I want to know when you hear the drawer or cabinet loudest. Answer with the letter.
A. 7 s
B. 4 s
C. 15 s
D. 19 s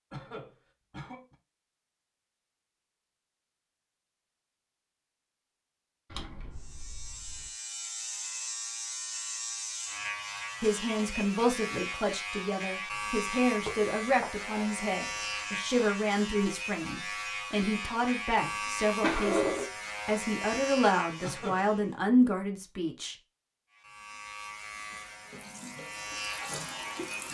D.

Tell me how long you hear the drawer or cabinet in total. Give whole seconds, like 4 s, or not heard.
3 s.